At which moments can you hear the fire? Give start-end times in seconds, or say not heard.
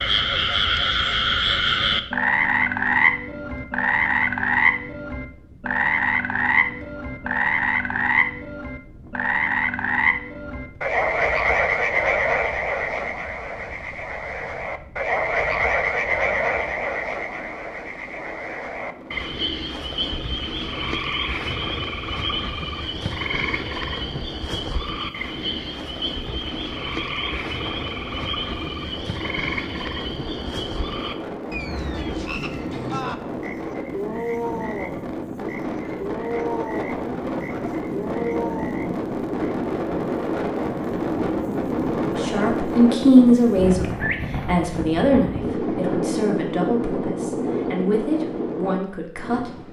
not heard.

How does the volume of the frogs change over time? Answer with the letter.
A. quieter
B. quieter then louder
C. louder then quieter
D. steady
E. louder
A.